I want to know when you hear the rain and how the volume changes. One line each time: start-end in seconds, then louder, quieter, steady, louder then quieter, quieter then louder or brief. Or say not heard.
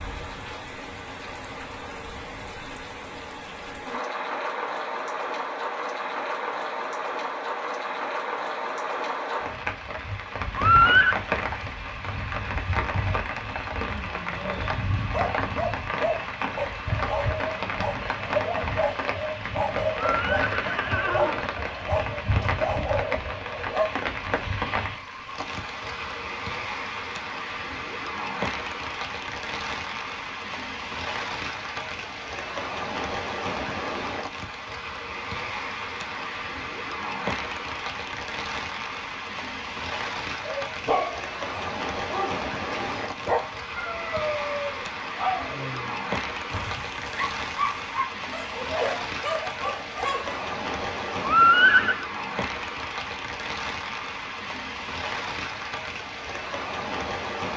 0.0-57.5 steady.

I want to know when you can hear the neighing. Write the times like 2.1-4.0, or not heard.
10.6-11.2, 19.9-21.4, 51.2-52.0.